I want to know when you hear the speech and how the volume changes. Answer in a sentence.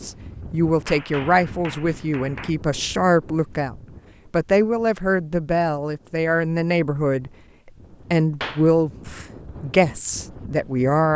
You can hear the speech from 0.0 to 11.1 s, at a steady volume.